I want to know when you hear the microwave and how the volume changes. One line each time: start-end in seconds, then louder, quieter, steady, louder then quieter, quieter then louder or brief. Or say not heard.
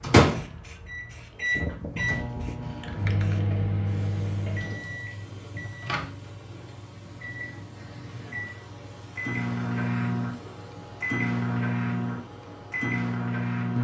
0.0-13.7 quieter then louder.